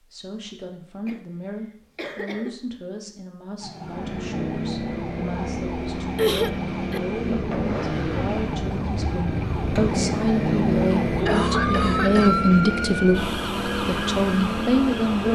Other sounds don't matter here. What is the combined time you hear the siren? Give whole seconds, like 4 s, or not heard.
12 s.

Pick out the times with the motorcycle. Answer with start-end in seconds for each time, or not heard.
3.8-15.3.